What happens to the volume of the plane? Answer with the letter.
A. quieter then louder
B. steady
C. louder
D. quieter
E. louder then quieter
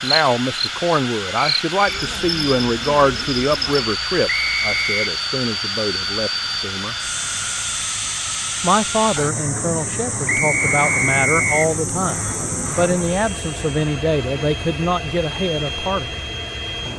B.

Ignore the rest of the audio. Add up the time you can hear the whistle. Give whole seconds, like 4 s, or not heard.
2 s.